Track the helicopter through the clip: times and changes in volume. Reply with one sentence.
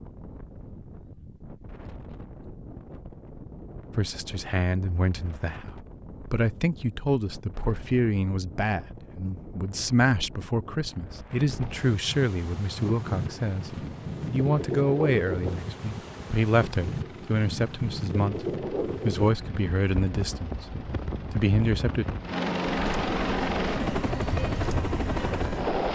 The helicopter can be heard from 11.4 to 25.9 s, getting louder.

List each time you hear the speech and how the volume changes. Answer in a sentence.
The speech can be heard from 4.0 to 22.1 s, at a steady volume.